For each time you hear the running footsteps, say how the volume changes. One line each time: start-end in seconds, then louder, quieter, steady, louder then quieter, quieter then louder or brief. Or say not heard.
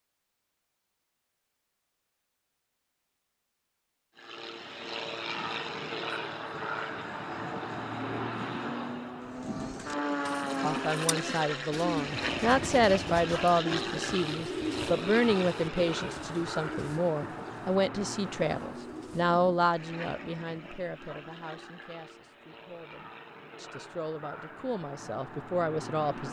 not heard.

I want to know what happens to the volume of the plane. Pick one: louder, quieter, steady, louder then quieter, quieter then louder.
quieter.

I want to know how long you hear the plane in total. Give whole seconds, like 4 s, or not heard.
22 s.